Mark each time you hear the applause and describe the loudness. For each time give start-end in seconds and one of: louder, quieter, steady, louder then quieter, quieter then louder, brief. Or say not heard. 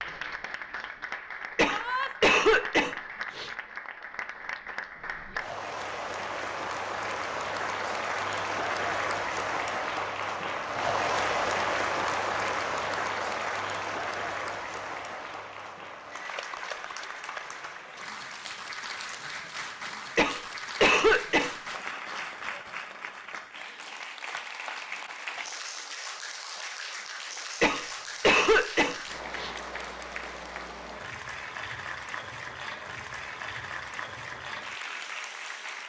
0.0-35.8 louder then quieter.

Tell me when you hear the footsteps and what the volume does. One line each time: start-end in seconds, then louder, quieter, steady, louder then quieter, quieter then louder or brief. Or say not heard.
not heard.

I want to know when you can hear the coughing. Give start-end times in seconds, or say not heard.
1.6-3.5, 20.1-21.6, 27.6-29.6.